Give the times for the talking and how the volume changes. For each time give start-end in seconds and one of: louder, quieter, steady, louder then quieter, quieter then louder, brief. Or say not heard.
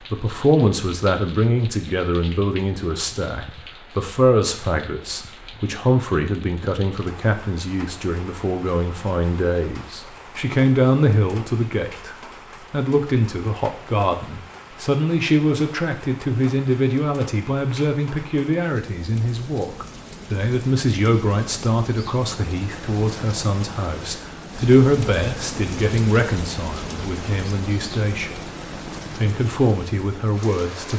0.1-30.9 steady.